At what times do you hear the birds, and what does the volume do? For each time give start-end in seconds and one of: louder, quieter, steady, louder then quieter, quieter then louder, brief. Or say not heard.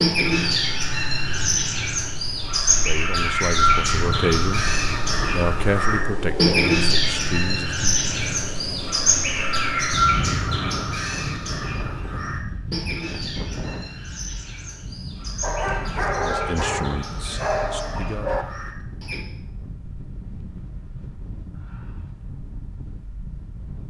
0.0-19.2 quieter.